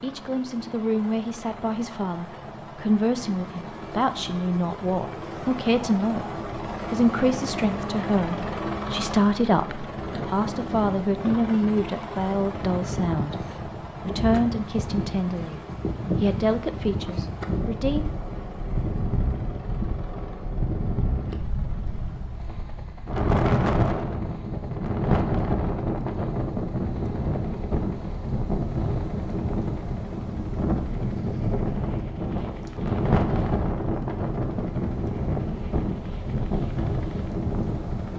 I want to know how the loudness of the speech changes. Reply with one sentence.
The volume of the speech stays about the same.